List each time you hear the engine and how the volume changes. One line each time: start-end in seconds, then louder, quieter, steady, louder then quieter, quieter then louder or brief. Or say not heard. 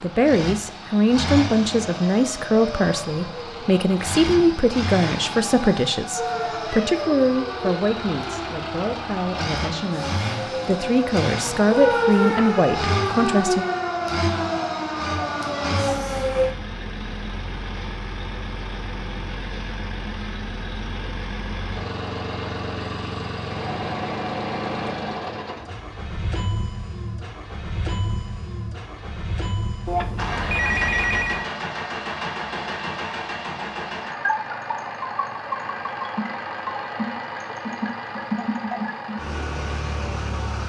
0.0-40.6 steady.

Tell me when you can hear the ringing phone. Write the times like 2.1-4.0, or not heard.
29.9-31.4.